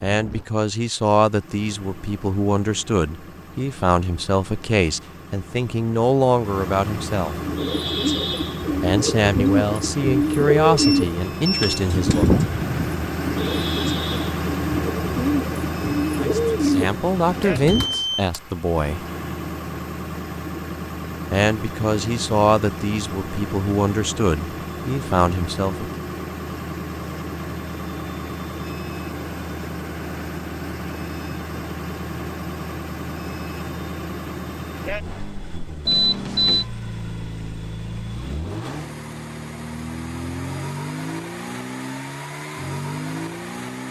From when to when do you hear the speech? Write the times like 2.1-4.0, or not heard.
0.0-7.3, 8.8-12.3, 16.2-19.1, 21.3-25.9.